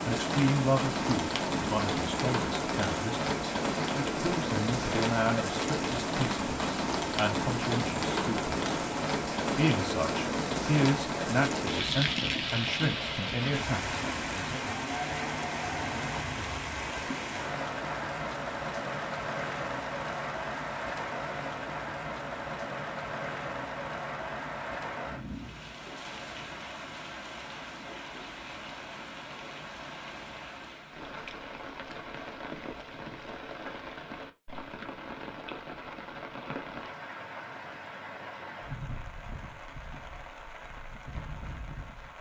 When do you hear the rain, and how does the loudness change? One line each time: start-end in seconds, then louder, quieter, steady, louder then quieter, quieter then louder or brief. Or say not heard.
0.0-42.1 quieter.